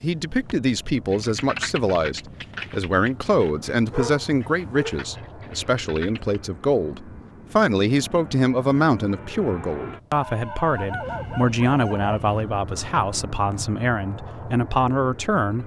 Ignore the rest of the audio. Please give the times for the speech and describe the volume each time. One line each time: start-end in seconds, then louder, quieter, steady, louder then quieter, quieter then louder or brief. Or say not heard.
0.0-15.6 steady.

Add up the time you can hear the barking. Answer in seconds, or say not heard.
3 s.